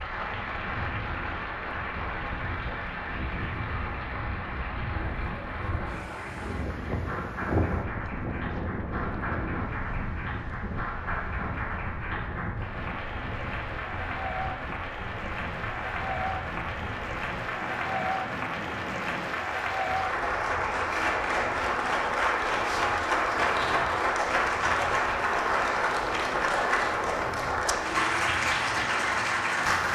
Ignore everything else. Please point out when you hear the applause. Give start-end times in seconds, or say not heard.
0.0-29.8.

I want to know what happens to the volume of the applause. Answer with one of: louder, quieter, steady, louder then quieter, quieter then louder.
louder.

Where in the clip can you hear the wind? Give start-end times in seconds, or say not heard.
0.0-29.8.